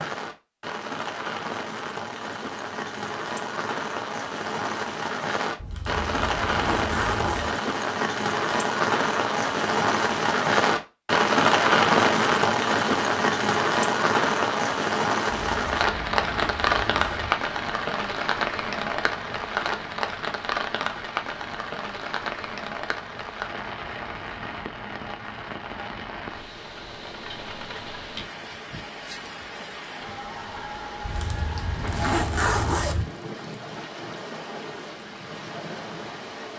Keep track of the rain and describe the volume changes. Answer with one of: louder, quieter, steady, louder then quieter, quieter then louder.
louder then quieter.